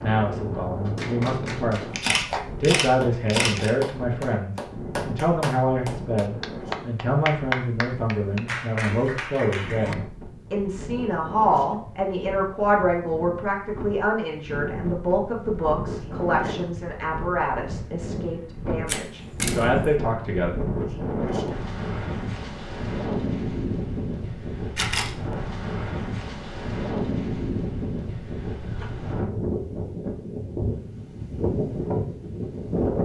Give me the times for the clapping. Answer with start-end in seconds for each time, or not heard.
0.8-9.9.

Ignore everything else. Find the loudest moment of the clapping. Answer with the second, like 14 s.
7 s.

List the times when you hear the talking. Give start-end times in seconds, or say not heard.
0.0-1.9, 2.6-20.5.